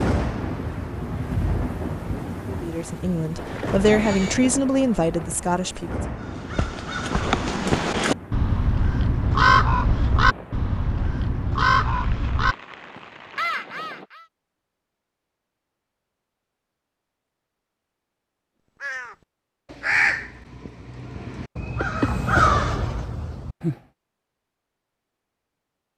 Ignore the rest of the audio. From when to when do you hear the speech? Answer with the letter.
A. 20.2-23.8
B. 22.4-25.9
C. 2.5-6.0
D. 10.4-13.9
C.